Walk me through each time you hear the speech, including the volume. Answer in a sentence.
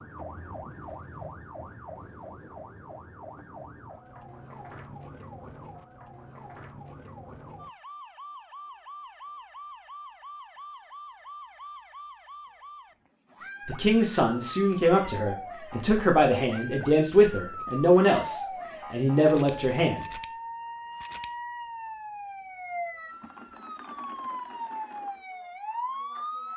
You can hear the speech from 13.7 to 20.1 s, at a steady volume.